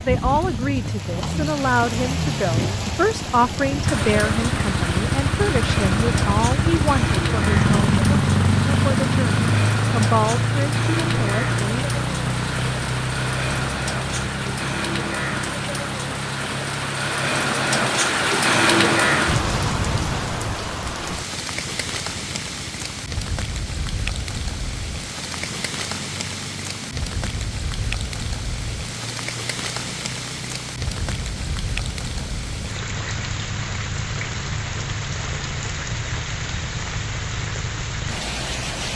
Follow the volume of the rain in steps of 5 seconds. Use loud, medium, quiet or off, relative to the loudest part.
medium, medium, medium, loud, medium, medium, medium, medium.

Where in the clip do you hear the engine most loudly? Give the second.
8 s.